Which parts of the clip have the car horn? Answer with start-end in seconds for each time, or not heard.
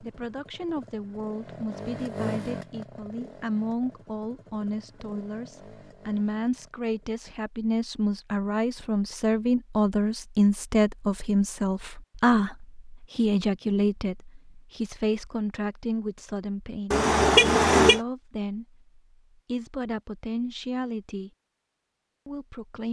16.9-18.0.